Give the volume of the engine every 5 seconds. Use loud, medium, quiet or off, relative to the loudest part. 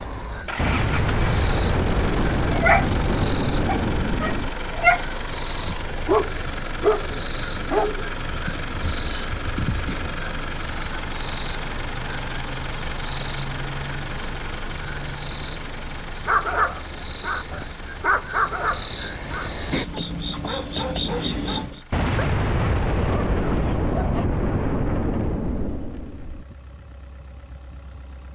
loud, loud, loud, medium, quiet, quiet.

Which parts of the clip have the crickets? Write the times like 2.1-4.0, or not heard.
0.0-21.8.